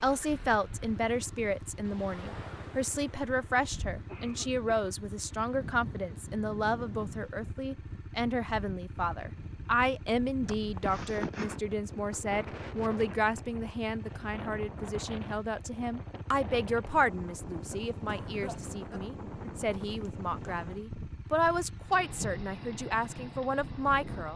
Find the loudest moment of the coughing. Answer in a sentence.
The loudest moment of the coughing is at 11 seconds.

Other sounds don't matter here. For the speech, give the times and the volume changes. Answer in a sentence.
You can hear the speech from 0.0 to 24.3 s, at a steady volume.